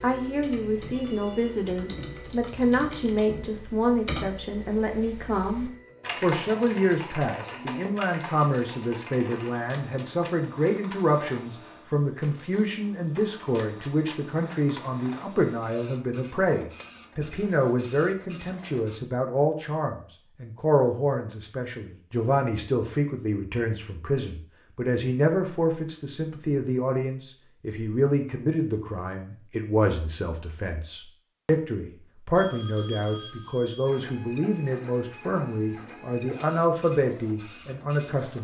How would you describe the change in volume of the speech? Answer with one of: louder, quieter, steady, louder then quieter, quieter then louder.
steady.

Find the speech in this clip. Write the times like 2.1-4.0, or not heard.
0.0-38.3.